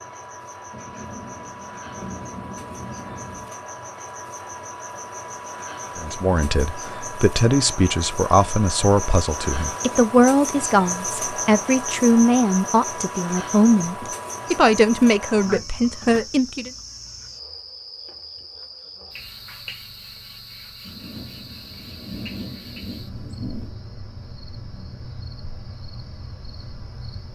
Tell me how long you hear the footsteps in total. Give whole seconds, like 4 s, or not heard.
not heard.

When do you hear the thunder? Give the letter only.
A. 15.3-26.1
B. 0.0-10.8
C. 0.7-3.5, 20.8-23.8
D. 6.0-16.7
C.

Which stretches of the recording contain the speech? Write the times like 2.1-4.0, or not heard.
6.0-16.7.